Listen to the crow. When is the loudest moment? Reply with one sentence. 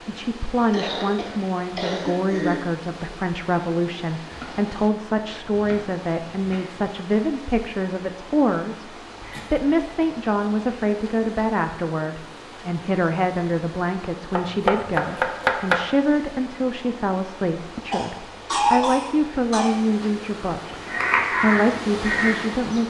The loudest moment of the crow is at 21 seconds.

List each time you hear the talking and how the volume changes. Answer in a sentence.
The talking can be heard from 0.1 to 22.8 s, at a steady volume.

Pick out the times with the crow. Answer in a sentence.
You can hear the crow from 20.6 to 22.8 s.